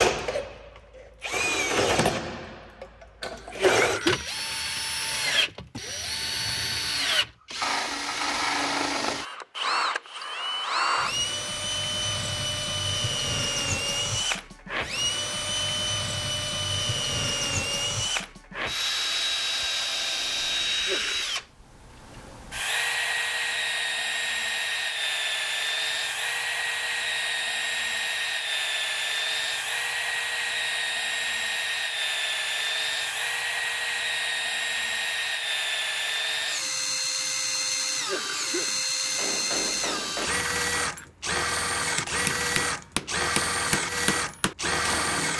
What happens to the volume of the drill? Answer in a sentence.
The volume of the drill stays about the same.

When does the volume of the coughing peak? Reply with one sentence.
The volume of the coughing peaks at 4 seconds.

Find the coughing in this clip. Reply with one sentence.
The coughing can be heard from 3.5 to 4.2 s, from 20.6 to 21.2 s and from 37.8 to 38.9 s.